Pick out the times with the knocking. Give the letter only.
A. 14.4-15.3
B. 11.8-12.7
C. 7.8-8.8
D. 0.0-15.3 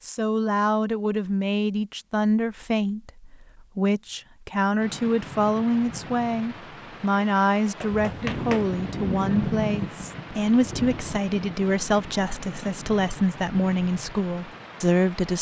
C.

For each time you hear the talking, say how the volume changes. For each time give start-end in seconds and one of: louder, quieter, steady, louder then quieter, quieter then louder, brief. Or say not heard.
0.0-15.3 steady.